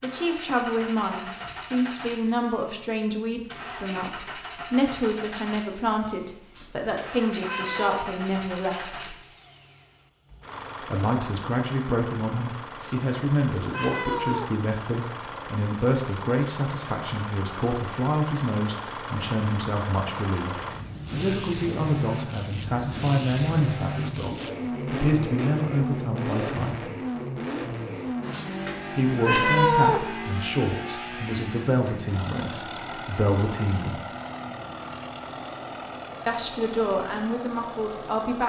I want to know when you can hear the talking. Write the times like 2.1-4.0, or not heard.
0.0-9.2, 10.8-26.9, 28.9-34.0, 36.2-38.4.